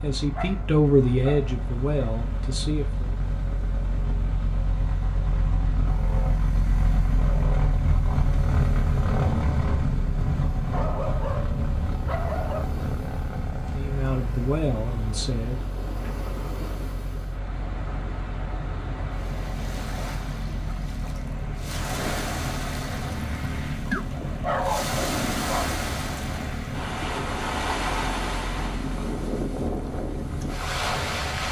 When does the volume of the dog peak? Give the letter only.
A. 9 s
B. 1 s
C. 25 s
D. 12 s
C.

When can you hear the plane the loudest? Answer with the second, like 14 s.
9 s.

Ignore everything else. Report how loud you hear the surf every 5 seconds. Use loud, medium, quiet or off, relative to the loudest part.
quiet, quiet, quiet, medium, loud, loud, loud.